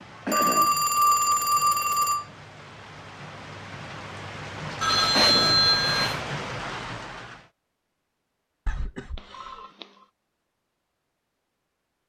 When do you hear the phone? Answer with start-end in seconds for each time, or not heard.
0.3-2.2, 4.8-6.2, 9.2-10.1.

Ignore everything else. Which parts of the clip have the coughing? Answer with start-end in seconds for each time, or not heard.
0.2-0.8, 5.2-5.7, 8.7-9.6.